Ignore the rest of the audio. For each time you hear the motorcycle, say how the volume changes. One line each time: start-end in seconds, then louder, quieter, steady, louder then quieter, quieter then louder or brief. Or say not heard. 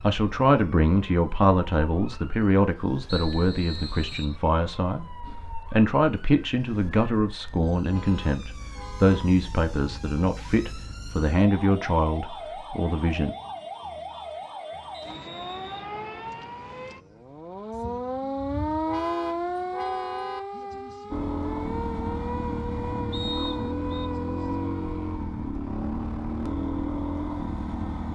21.1-28.1 steady.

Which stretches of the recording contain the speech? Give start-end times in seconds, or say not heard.
0.0-13.3.